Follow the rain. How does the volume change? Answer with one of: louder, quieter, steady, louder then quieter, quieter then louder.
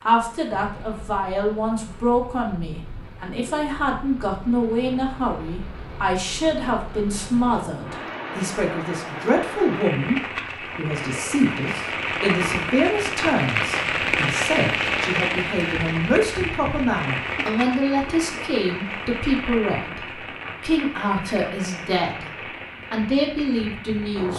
louder then quieter.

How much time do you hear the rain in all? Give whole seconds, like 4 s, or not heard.
24 s.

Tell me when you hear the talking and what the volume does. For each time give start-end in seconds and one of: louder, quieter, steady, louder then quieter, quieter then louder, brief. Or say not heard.
0.0-24.3 steady.